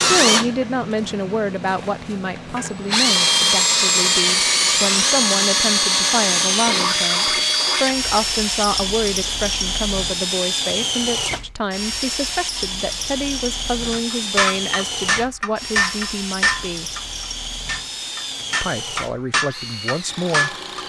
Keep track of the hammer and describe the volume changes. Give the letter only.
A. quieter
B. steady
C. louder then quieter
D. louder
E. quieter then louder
E.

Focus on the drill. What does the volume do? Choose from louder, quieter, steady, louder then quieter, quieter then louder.
quieter.